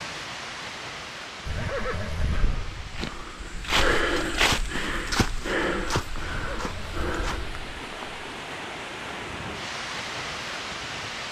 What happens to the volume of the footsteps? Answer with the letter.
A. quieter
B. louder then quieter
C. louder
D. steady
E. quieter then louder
B.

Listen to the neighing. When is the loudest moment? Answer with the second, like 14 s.
2 s.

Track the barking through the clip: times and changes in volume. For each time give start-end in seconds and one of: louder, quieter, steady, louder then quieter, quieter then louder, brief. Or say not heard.
not heard.